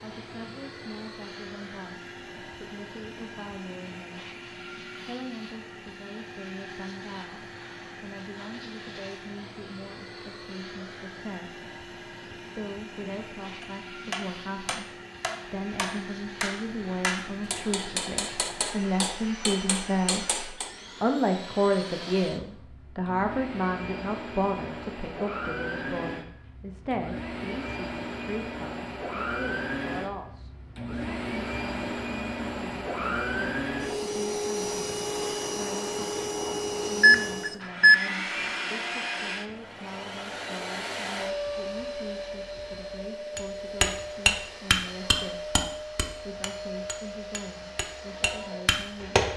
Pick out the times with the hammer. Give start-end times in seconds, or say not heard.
13.6-20.7, 43.4-49.3.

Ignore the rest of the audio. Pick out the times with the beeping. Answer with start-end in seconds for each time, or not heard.
37.0-38.0.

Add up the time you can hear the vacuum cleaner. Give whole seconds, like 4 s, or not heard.
49 s.